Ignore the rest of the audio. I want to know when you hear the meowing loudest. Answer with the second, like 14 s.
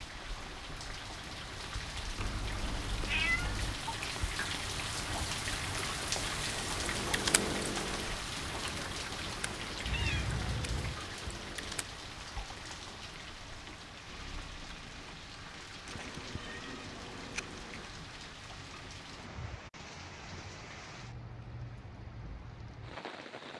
3 s.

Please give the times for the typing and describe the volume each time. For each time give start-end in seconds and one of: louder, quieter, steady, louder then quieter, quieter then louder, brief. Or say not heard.
6.2-11.8 quieter.